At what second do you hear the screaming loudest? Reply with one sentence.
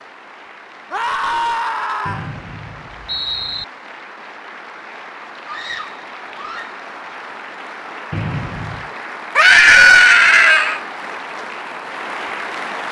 The volume of the screaming peaks at 10 seconds.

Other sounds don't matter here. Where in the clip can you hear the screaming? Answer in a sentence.
The screaming can be heard from 0.9 to 2.4 s, from 5.5 to 6.8 s and from 9.3 to 10.8 s.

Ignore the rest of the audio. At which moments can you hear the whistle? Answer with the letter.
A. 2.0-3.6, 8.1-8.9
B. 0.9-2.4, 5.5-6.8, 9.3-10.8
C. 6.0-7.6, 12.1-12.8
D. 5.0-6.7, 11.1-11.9
A.